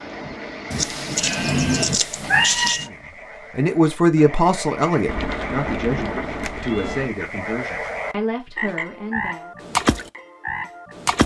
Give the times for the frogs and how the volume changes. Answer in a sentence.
The frogs can be heard from 0.0 to 11.2 s, getting louder.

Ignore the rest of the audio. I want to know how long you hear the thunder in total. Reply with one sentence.
The thunder can be heard for 2 seconds in total.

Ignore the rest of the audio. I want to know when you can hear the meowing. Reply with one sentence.
You can hear the meowing from 0.7 to 2.9 s and from 6.4 to 7.0 s.